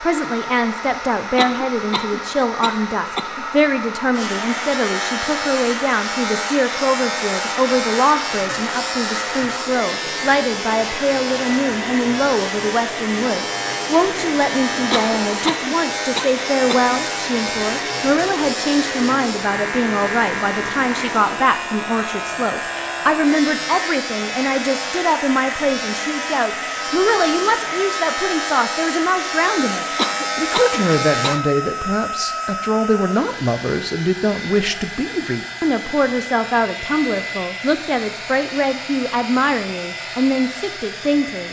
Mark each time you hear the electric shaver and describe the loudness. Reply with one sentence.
The electric shaver can be heard from 4.1 to 31.4 s, at a steady volume.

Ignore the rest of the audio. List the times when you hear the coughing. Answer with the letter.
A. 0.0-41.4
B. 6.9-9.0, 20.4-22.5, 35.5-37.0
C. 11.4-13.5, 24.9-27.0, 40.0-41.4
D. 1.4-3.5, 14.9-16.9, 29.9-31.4
D.